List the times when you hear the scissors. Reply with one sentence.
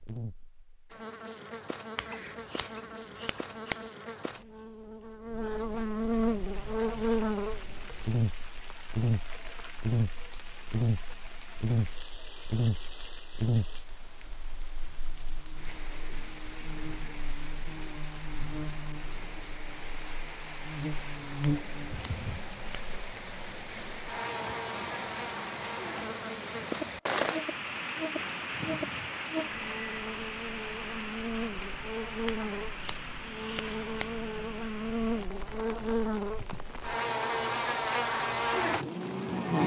The scissors can be heard from 1.9 to 3.8 s, from 21.4 to 23.2 s and from 32.2 to 34.1 s.